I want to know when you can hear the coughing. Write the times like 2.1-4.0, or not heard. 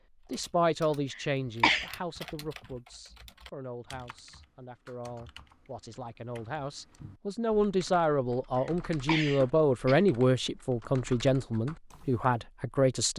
1.1-1.9, 8.6-10.1.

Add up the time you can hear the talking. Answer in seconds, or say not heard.
13 s.